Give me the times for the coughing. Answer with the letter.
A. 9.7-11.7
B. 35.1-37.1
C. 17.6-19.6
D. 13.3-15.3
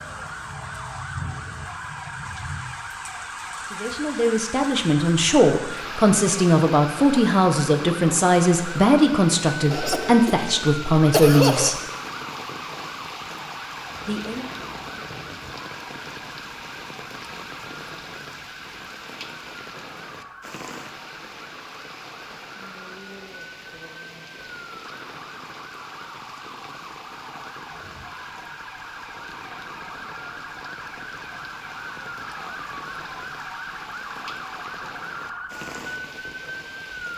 A.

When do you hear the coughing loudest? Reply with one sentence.
The volume of the coughing peaks at 11 seconds.